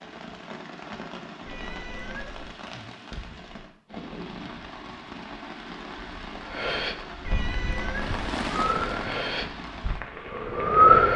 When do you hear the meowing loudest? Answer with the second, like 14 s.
8 s.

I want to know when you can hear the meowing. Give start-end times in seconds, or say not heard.
1.4-2.5, 7.2-8.3.